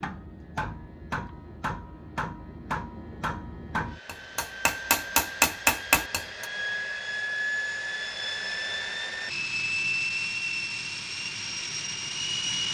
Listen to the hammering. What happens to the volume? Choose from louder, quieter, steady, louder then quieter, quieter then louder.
louder.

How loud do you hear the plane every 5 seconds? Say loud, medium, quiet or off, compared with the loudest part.
quiet, loud, loud.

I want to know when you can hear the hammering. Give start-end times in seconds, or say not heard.
0.0-6.5.